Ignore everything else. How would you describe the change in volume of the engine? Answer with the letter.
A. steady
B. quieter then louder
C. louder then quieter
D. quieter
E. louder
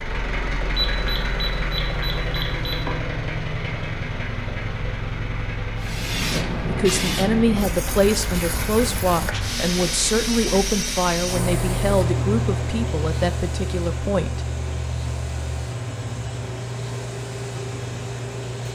D.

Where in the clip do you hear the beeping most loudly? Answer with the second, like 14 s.
1 s.